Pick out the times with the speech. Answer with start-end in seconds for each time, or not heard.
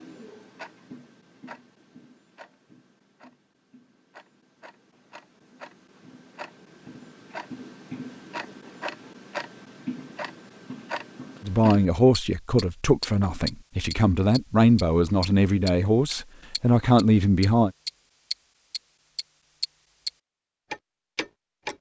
11.4-17.7.